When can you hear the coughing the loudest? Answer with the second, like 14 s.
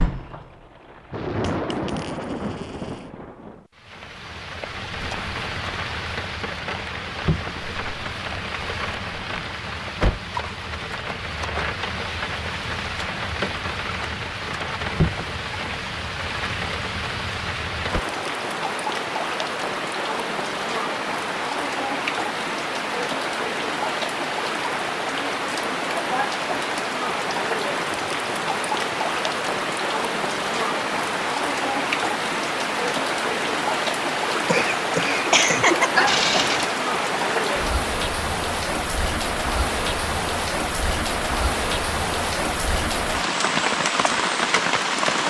36 s.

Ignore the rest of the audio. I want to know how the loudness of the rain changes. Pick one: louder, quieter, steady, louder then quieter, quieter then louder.
louder.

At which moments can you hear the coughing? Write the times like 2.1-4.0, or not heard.
34.3-36.1.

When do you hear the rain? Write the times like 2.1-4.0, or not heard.
0.0-45.2.